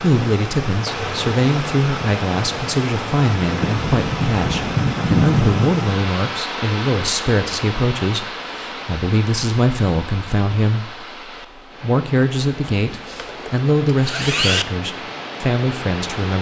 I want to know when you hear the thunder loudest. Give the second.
5 s.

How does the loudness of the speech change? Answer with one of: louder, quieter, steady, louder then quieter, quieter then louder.
steady.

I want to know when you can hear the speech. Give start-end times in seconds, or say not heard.
0.0-11.1, 11.8-16.3.